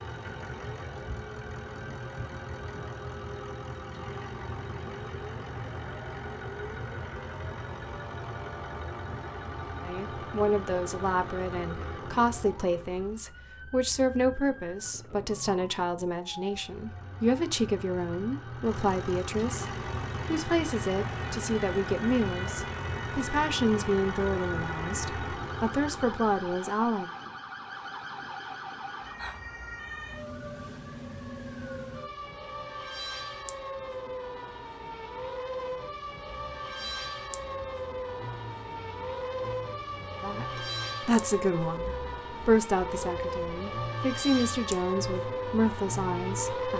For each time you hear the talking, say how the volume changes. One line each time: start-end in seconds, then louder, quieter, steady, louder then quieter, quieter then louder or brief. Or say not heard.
9.8-27.1 steady
40.2-46.7 quieter then louder.